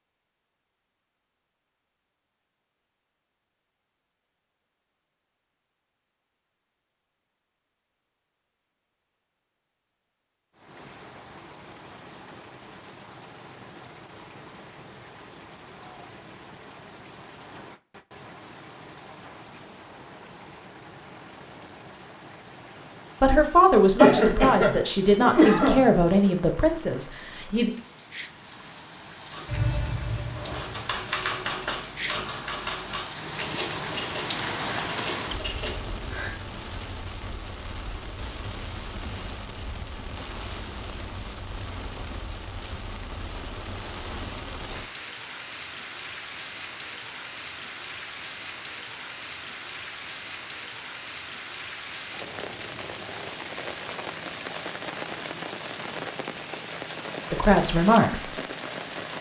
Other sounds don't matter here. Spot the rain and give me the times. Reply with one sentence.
You can hear the rain from 10.5 to 59.1 s.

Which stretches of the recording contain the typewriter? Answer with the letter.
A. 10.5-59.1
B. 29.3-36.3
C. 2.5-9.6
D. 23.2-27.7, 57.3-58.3
B.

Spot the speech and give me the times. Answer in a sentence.
The speech can be heard from 23.2 to 27.7 s and from 57.3 to 58.3 s.